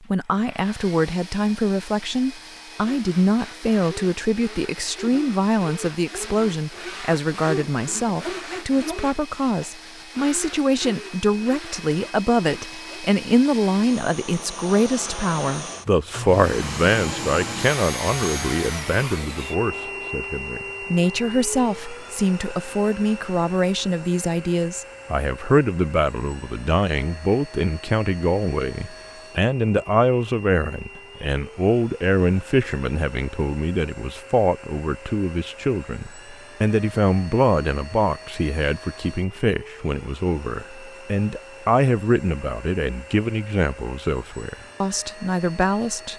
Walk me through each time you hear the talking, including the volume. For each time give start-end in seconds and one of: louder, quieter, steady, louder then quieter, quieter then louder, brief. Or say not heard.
0.1-46.1 steady.